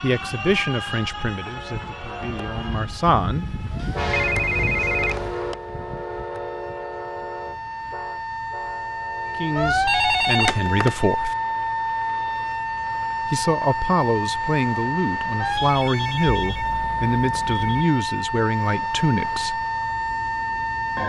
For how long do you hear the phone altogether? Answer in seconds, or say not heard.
5 s.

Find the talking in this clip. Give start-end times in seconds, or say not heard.
0.0-3.6, 9.3-11.3, 13.2-19.6.